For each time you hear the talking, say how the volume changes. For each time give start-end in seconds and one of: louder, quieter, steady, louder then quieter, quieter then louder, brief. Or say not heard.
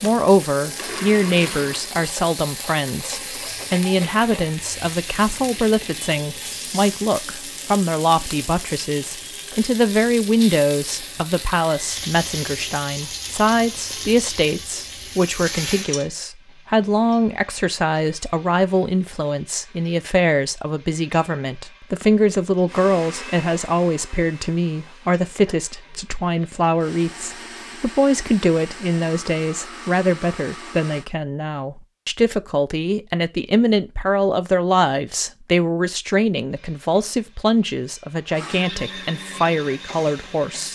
0.0-40.7 steady.